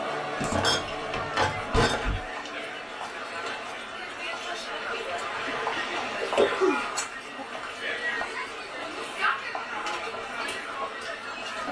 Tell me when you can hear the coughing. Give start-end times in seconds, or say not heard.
5.5-7.5.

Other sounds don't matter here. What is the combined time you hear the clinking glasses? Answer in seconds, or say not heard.
2 s.